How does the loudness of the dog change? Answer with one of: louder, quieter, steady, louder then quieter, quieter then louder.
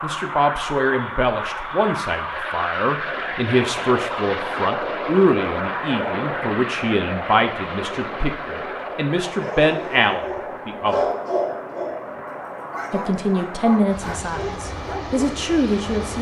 louder then quieter.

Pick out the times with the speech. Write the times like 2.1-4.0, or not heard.
0.0-11.1, 12.9-16.1.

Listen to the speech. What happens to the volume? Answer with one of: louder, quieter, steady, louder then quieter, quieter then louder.
steady.